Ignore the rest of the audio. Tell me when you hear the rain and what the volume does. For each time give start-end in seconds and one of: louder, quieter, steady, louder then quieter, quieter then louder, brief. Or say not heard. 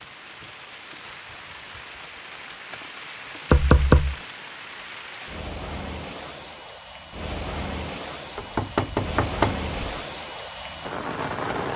0.0-11.7 louder.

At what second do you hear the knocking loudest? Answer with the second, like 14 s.
4 s.